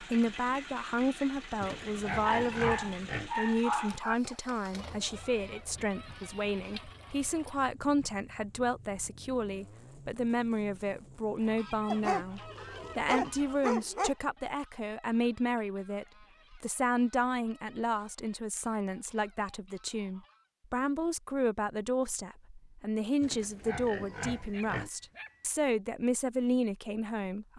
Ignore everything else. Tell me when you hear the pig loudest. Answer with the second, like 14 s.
3 s.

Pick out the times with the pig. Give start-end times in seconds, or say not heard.
1.6-3.3, 23.2-24.9.